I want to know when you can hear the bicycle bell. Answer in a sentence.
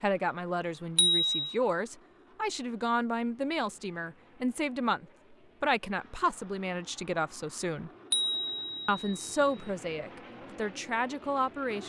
You can hear the bicycle bell from 0.9 to 1.6 s and from 8.1 to 9.7 s.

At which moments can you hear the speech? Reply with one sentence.
The speech can be heard from 0.0 to 7.9 s and from 8.8 to 11.8 s.